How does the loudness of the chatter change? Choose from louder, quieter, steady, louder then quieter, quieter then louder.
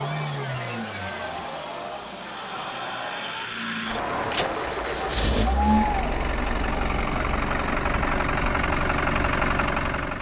louder.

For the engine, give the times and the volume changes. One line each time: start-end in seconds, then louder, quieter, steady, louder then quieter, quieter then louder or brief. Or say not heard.
0.0-10.1 louder.